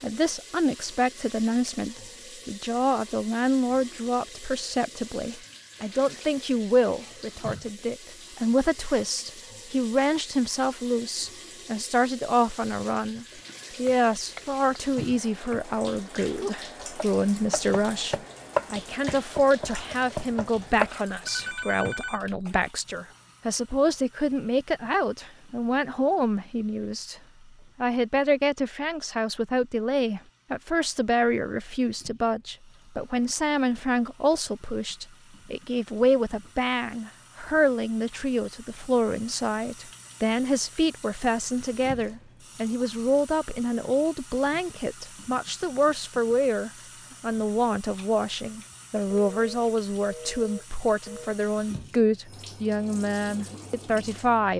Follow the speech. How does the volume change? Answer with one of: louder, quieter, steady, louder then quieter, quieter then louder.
steady.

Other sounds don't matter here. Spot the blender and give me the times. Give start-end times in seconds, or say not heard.
not heard.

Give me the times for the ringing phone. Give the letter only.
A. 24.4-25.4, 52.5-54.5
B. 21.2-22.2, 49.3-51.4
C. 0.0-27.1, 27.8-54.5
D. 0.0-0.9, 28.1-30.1
B.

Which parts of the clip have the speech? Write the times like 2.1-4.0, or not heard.
0.0-27.1, 27.8-54.5.